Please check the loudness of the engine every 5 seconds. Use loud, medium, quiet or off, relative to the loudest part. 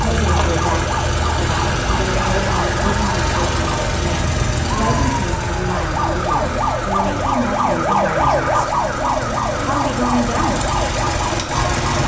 loud, medium, loud.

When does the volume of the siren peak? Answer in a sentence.
The loudest moment of the siren is at 8 seconds.